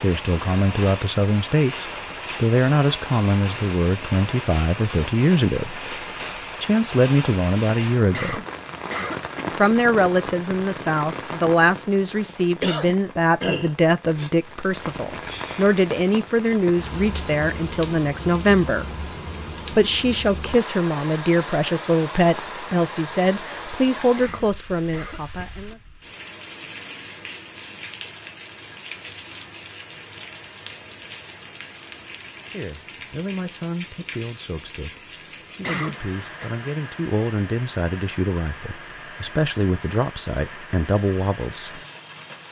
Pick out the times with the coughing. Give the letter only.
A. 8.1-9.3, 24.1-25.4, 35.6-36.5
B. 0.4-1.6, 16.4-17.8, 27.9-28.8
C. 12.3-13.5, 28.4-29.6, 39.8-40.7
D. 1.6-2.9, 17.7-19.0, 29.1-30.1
A.